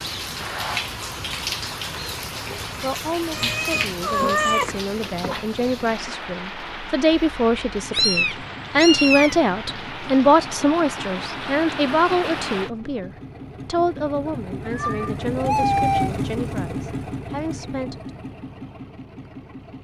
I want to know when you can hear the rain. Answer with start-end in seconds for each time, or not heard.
0.0-12.7.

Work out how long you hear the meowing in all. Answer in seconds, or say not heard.
4 s.